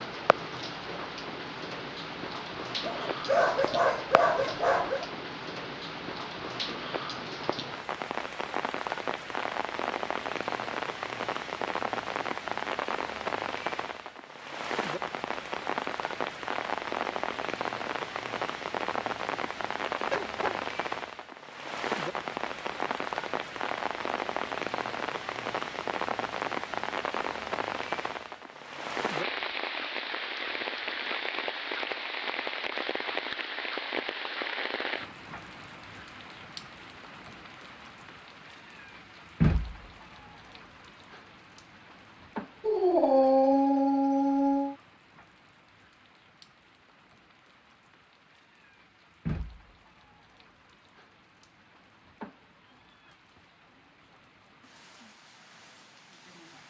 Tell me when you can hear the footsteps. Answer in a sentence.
The footsteps can't be heard in this clip.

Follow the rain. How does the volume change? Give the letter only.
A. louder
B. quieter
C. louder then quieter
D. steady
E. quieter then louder
B.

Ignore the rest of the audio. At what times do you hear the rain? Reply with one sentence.
You can hear the rain from 0.0 to 56.6 s.